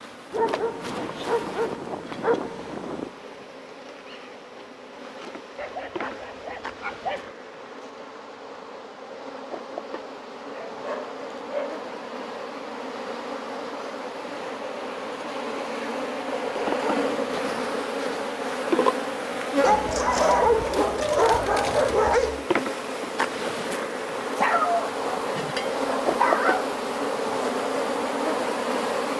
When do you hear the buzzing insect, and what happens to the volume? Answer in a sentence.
You can hear the buzzing insect from 0.0 to 29.1 s, getting louder.